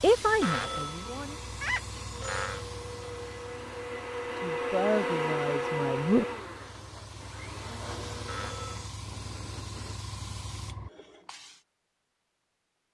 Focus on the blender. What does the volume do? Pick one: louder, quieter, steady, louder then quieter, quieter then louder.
louder then quieter.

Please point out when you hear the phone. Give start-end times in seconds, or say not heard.
0.4-2.6, 8.2-8.8.